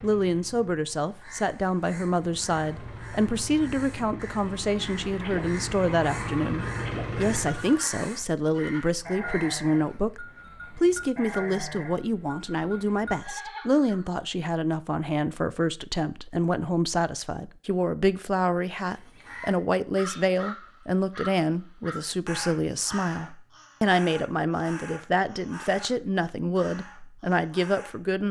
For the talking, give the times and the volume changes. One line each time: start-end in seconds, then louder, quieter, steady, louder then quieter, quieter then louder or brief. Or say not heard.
0.0-28.2 steady.